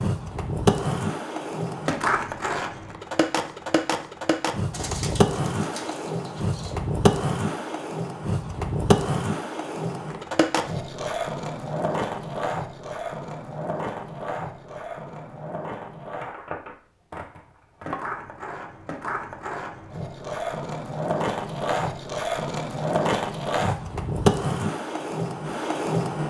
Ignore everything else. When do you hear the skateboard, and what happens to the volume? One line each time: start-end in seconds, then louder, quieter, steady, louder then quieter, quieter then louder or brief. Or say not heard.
0.0-26.2 quieter then louder.